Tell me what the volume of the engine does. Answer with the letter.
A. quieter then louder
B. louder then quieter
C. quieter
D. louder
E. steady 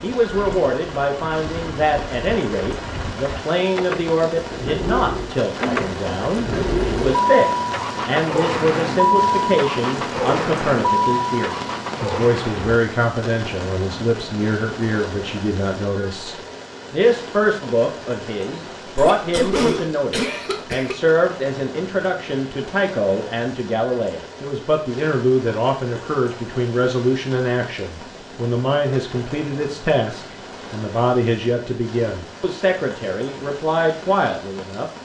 D.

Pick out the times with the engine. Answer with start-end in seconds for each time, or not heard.
0.0-12.8.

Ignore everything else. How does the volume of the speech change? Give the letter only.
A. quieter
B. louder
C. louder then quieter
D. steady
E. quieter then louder
D.